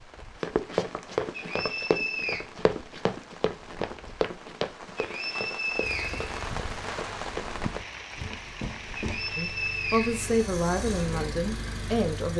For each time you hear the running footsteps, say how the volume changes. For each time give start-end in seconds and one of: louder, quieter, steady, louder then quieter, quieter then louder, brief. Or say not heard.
0.4-9.3 quieter.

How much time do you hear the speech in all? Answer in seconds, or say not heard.
3 s.